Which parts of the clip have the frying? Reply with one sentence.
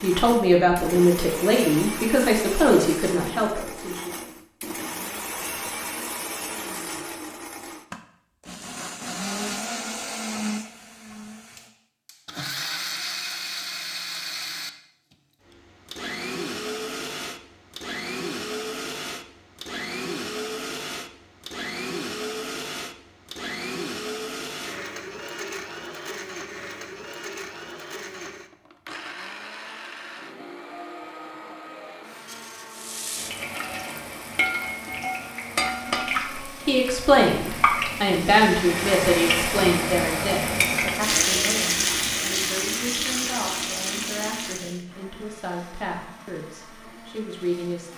The frying can be heard from 32.7 to 44.8 s.